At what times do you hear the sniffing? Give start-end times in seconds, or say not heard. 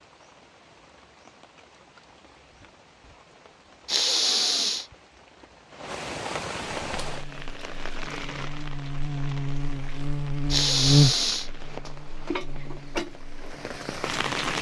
3.9-4.8, 10.5-11.5.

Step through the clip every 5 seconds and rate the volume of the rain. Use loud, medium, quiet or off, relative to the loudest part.
quiet, loud, loud.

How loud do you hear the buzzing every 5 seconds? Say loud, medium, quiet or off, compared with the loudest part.
off, medium, loud.